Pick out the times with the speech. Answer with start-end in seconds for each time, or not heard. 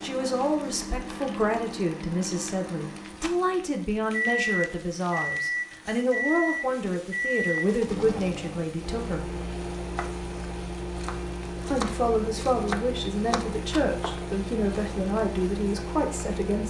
0.0-9.3, 11.7-16.6.